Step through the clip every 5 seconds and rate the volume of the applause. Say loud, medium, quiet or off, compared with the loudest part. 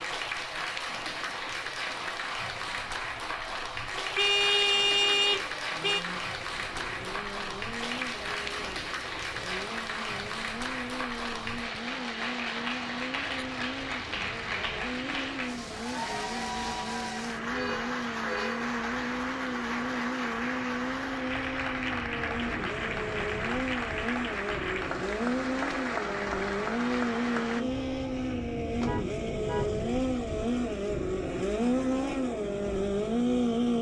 loud, loud, loud, loud, loud, loud, off.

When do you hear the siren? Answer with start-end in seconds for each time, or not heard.
not heard.